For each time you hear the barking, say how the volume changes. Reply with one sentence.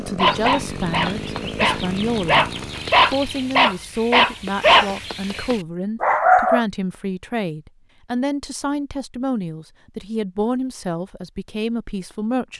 You can hear the barking from 0.1 to 6.7 s, getting louder then quieter.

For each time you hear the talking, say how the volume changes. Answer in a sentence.
You can hear the talking briefly from 0.0 to 2.5 s; and from 3.0 to 12.5 s, at a steady volume.